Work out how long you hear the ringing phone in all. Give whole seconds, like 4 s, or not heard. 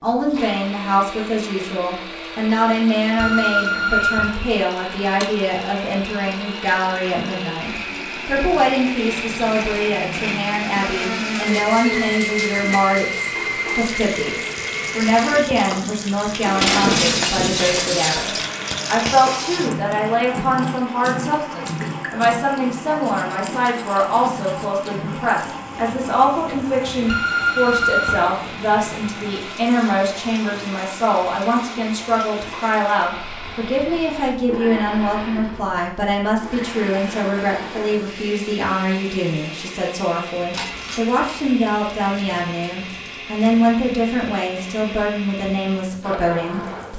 2 s.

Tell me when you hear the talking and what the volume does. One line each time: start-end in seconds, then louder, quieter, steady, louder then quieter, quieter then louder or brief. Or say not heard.
0.0-46.9 steady.